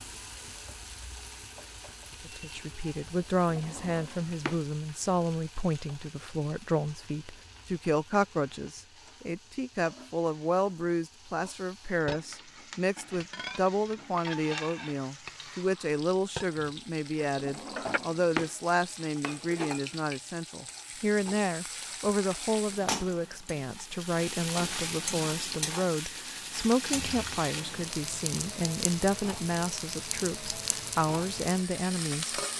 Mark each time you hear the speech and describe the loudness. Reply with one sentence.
The speech can be heard from 2.2 to 32.4 s, at a steady volume.